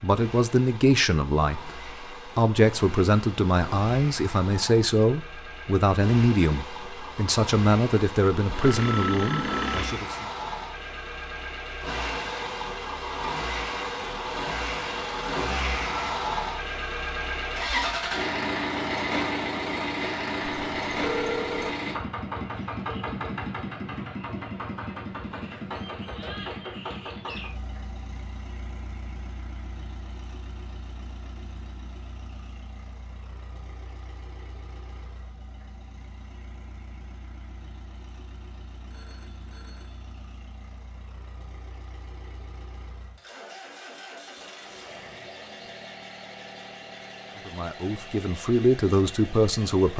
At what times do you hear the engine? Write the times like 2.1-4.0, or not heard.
0.0-49.9.